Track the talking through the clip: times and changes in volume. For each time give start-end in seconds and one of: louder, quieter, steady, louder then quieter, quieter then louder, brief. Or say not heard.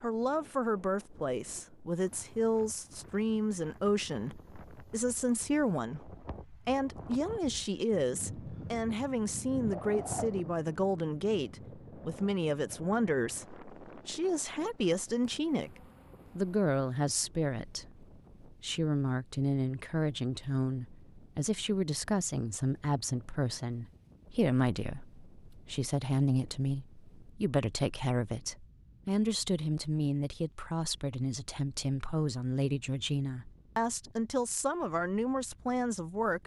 0.0-36.4 steady.